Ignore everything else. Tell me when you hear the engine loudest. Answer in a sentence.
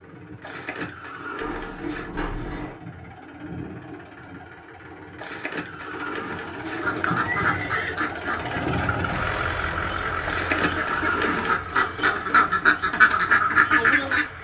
The loudest moment of the engine is at 9 seconds.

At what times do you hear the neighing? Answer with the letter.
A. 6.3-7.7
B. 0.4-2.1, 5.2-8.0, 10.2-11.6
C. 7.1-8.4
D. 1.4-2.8
B.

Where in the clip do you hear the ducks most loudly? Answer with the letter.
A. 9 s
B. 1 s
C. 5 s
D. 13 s
D.